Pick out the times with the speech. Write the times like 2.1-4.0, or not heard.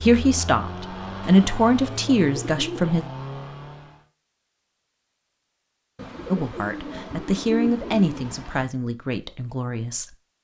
0.0-3.0, 6.3-10.2.